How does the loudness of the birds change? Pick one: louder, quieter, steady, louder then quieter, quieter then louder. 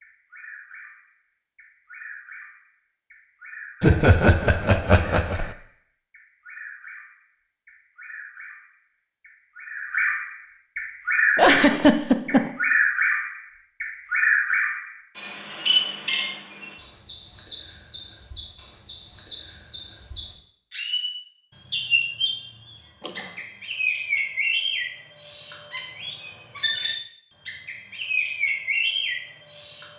louder.